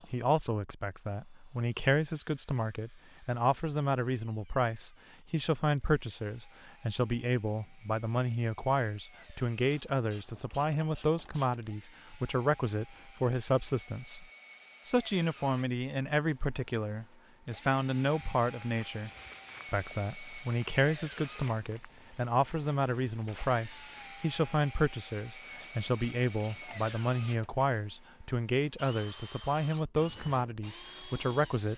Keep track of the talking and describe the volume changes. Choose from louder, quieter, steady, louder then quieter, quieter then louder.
steady.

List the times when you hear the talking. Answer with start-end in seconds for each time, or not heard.
0.1-14.2, 14.8-19.1, 19.7-31.7.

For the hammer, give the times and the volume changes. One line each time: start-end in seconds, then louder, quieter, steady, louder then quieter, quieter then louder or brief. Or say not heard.
not heard.